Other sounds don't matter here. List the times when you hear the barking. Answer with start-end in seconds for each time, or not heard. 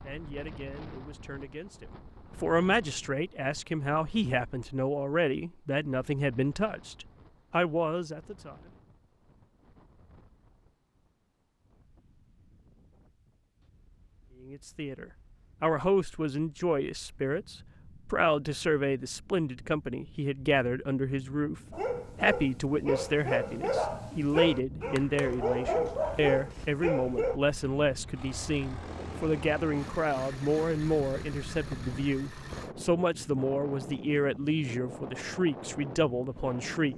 21.7-27.4.